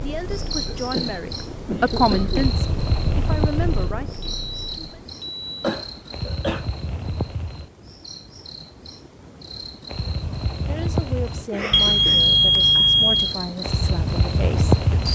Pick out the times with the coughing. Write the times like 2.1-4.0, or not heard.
0.7-2.5, 5.6-6.7, 11.5-12.2.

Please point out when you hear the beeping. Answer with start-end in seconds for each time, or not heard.
4.2-5.8, 11.7-13.3.